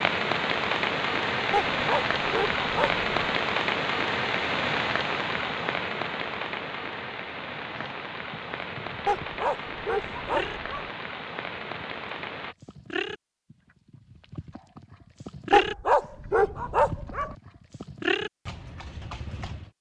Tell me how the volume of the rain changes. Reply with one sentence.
The volume of the rain goes down.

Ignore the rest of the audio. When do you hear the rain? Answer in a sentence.
You can hear the rain from 0.0 to 12.6 s.